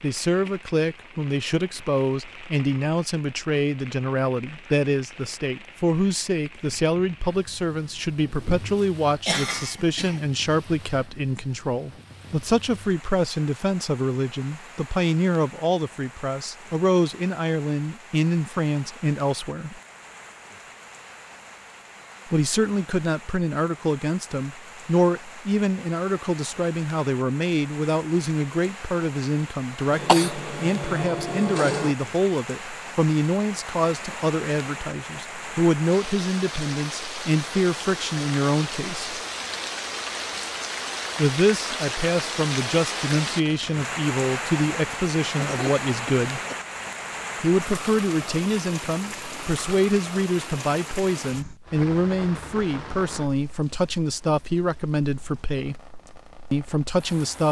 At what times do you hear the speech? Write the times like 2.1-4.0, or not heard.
0.0-19.8, 22.2-39.2, 41.1-46.4, 47.4-55.8, 56.5-57.4.